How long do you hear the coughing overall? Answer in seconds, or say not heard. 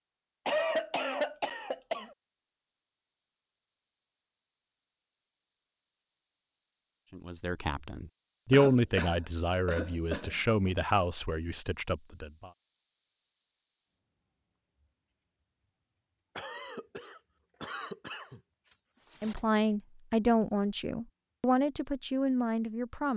6 s.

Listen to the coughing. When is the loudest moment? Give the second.
1 s.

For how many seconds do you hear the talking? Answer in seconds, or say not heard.
9 s.